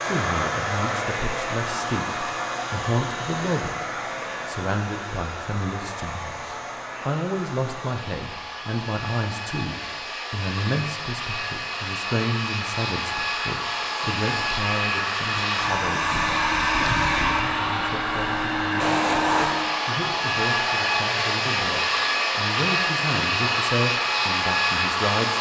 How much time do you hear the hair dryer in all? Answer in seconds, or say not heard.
25 s.